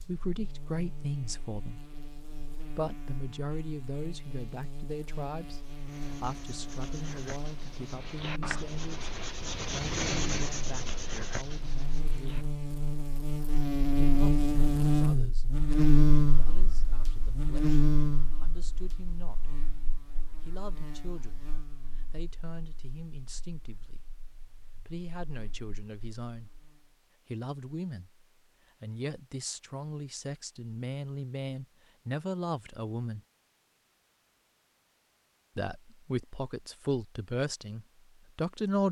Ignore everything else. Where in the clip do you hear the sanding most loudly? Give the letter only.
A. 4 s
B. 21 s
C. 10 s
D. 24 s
C.